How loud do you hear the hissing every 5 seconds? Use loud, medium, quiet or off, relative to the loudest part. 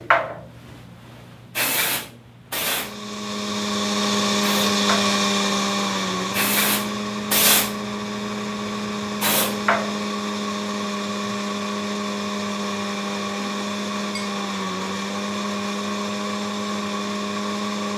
loud, loud, off, off.